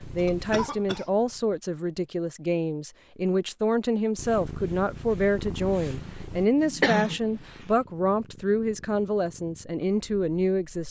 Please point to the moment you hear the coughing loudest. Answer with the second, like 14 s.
7 s.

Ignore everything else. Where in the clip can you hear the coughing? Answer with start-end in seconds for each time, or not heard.
0.1-1.1, 5.8-7.3.